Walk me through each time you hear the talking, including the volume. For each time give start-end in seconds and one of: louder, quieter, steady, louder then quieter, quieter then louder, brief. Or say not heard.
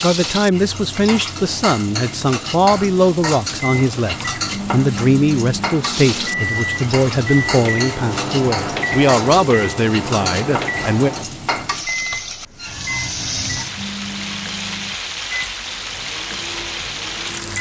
0.0-11.1 steady.